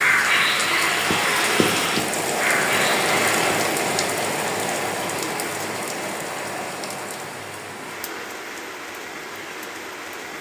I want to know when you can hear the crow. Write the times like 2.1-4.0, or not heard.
0.0-3.6.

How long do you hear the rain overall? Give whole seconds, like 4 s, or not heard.
10 s.